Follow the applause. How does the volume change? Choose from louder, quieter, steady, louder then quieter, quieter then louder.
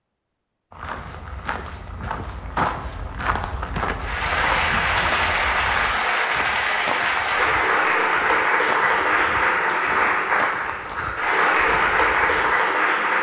steady.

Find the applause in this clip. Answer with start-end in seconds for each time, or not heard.
4.0-13.1.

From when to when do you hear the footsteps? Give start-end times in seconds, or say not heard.
0.7-12.6.